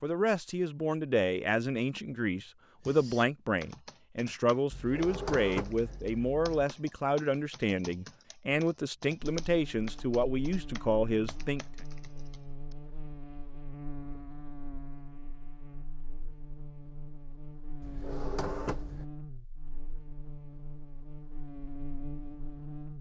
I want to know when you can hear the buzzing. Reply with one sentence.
You can hear the buzzing from 9.4 to 22.9 s.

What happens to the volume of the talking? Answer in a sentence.
The loudness of the talking stays about the same.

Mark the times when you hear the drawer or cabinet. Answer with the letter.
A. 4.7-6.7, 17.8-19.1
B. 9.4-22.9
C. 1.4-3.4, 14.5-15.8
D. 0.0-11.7
A.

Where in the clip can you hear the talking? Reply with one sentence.
You can hear the talking from 0.0 to 11.7 s.